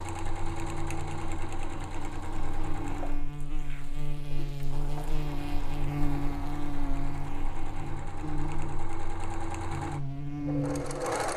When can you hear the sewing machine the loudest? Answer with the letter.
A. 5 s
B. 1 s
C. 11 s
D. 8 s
C.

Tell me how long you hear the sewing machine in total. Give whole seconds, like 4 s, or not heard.
11 s.